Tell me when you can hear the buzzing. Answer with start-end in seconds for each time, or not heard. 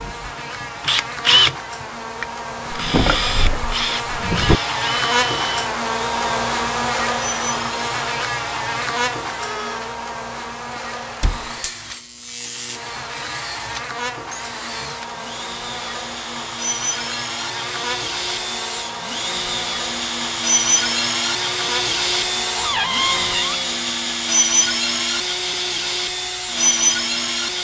0.0-23.4.